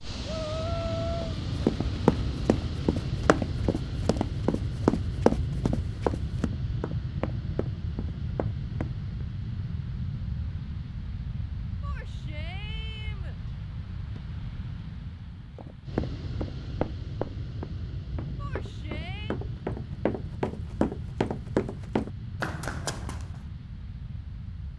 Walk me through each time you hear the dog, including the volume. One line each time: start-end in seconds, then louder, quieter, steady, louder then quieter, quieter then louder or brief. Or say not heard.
not heard.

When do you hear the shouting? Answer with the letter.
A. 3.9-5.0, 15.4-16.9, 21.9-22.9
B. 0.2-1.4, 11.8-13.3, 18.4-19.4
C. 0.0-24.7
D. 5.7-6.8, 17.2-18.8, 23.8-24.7
B.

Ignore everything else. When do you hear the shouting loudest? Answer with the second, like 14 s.
1 s.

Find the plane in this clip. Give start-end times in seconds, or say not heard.
0.0-24.7.